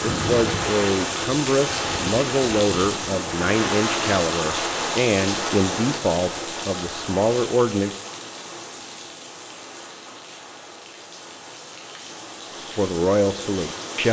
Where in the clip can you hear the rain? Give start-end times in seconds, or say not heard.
0.0-14.0.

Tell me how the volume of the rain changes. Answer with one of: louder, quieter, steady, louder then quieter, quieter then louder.
quieter.